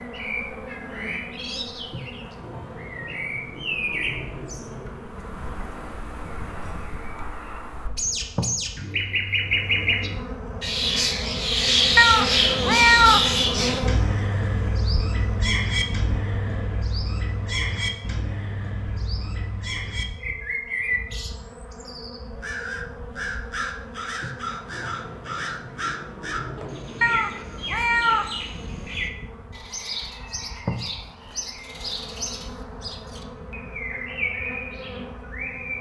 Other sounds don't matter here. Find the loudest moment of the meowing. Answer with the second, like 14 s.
13 s.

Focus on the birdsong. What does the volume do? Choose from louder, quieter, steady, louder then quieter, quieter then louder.
louder then quieter.